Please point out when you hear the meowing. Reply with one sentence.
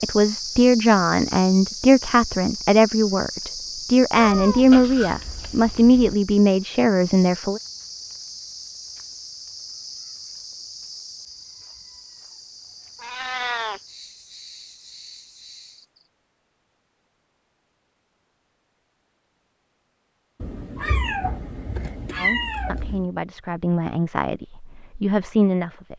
The meowing can be heard from 4.2 to 6.2 s, from 13.0 to 13.8 s and from 20.4 to 23.1 s.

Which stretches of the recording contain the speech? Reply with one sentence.
The speech can be heard from 0.0 to 7.6 s and from 22.1 to 25.9 s.